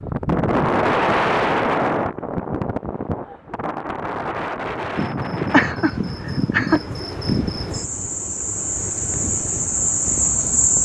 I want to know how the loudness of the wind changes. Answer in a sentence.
The loudness of the wind goes down.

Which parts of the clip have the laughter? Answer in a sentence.
The laughter can be heard from 5.5 to 6.8 s.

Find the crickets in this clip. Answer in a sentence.
The crickets can be heard from 5.0 to 10.7 s.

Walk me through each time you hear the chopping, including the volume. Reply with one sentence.
The chopping can't be heard in this clip.